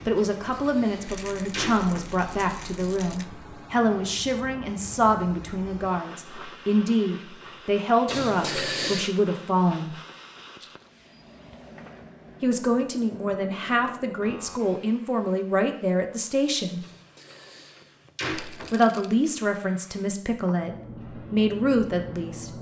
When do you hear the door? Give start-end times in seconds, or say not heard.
0.3-2.1, 8.1-9.1, 16.8-18.8.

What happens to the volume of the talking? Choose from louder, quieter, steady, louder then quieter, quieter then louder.
steady.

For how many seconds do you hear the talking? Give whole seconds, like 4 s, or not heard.
18 s.